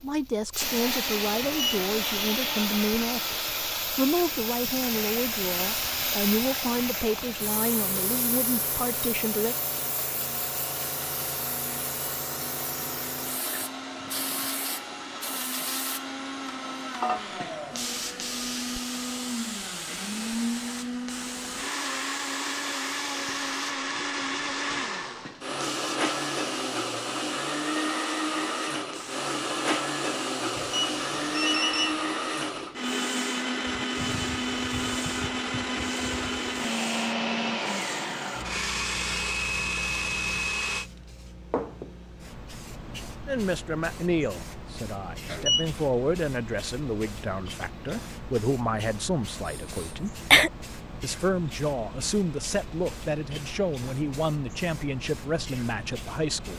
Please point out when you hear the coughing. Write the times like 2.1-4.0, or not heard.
49.5-50.5.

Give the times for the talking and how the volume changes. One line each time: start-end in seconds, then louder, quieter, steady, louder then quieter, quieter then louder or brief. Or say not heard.
0.0-9.6 steady
43.2-50.1 steady
51.0-56.5 steady.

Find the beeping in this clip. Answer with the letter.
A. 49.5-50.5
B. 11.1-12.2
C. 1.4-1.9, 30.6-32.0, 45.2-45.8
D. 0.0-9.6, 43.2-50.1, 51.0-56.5
C.